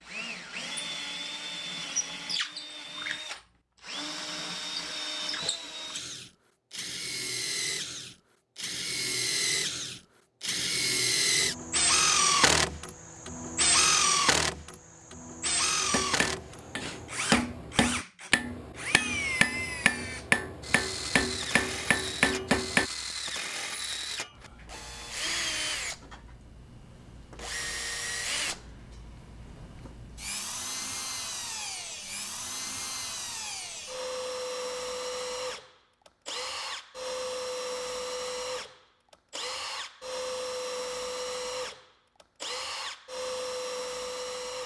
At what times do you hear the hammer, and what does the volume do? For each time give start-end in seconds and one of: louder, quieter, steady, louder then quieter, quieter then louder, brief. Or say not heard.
15.8-22.9 steady.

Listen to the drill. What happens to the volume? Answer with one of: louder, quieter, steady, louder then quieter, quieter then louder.
louder then quieter.